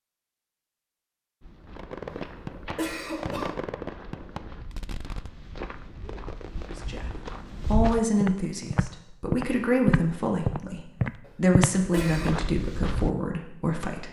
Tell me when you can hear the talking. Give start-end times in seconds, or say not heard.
6.7-14.0.